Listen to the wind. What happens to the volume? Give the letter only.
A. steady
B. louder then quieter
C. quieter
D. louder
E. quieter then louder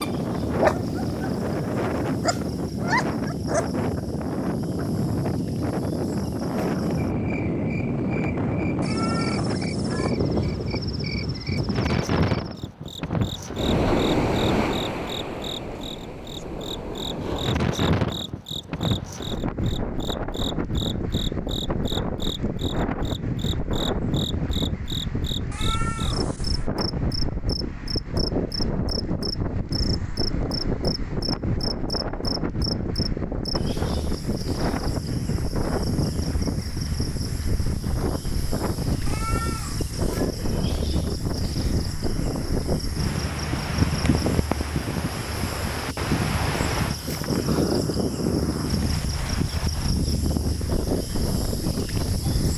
A.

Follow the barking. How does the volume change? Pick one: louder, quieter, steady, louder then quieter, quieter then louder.
quieter then louder.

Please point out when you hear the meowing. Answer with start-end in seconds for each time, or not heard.
8.8-10.2, 25.5-26.7, 39.0-40.3.